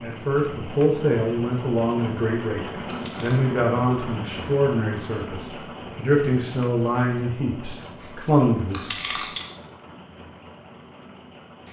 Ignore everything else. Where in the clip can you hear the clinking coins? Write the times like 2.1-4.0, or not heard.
2.1-3.4, 8.0-9.5.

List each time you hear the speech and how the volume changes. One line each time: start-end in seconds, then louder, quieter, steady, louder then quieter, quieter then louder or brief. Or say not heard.
0.0-8.9 steady.